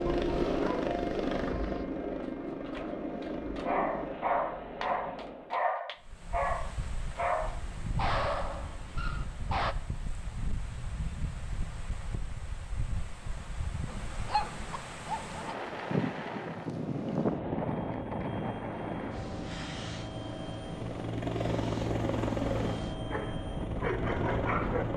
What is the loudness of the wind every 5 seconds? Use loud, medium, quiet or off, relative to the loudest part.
off, medium, medium, loud, medium.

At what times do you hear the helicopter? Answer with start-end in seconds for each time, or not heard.
0.0-5.6, 16.6-24.9.